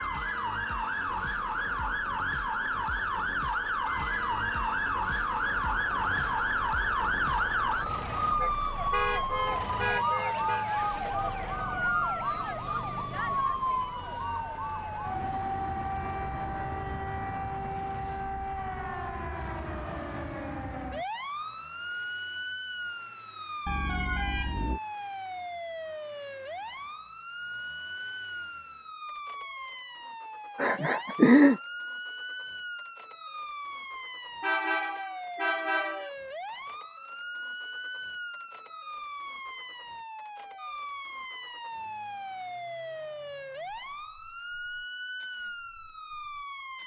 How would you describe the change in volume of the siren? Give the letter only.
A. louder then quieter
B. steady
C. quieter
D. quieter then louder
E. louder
C.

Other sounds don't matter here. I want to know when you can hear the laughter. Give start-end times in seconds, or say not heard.
30.6-31.6.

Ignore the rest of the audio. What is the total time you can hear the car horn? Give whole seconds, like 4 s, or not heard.
5 s.